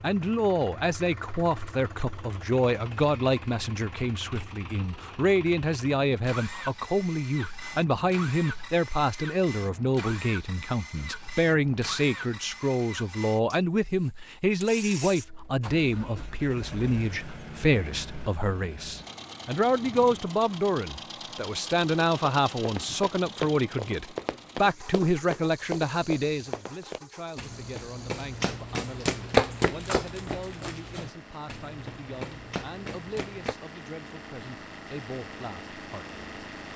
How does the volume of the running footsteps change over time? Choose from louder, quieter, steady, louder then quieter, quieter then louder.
louder then quieter.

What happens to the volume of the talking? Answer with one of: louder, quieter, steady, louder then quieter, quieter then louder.
quieter.